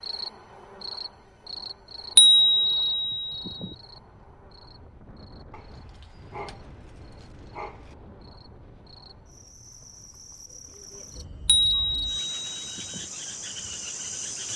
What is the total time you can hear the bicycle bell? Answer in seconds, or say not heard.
3 s.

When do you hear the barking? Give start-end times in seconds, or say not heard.
5.5-8.0.